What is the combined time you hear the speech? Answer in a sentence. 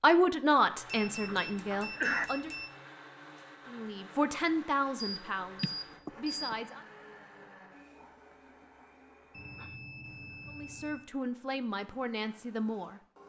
The speech can be heard for 8 seconds in total.